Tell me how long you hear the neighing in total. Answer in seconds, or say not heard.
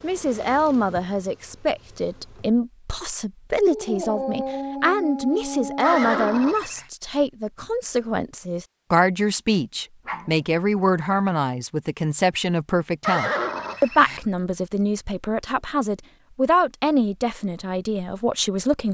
2 s.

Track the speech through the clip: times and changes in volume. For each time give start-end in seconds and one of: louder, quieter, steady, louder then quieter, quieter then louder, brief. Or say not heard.
0.0-18.8 steady.